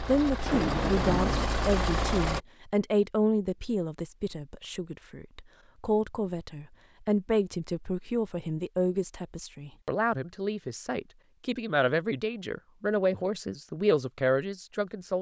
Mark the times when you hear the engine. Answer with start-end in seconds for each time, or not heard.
0.0-2.4.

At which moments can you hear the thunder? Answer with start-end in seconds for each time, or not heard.
0.5-1.4.